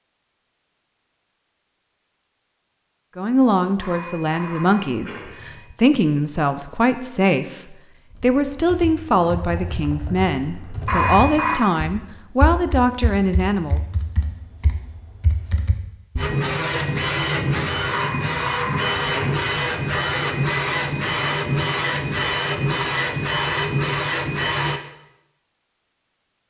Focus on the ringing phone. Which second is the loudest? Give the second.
11 s.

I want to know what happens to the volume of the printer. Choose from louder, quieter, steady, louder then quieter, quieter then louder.
steady.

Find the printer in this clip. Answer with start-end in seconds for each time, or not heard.
16.1-24.8.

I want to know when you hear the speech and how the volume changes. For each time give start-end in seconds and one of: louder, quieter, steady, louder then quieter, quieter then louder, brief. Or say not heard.
3.1-13.8 steady.